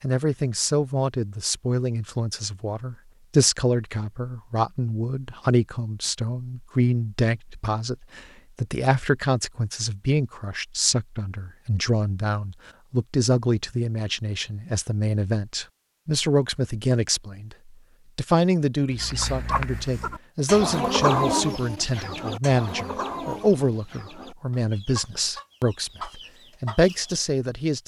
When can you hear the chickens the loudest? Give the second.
21 s.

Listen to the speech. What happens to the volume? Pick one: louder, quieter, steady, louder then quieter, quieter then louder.
steady.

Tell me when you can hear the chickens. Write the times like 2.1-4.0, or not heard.
18.9-27.2.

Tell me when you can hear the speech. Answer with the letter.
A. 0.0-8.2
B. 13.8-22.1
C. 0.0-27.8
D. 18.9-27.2
C.